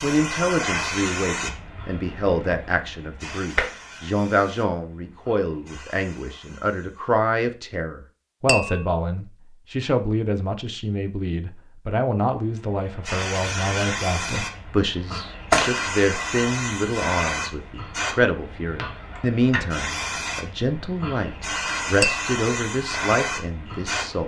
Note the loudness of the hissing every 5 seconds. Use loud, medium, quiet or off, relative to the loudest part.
loud, quiet, loud, loud, loud.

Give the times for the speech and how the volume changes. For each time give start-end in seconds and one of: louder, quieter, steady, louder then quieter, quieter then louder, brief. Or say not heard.
0.0-24.2 steady.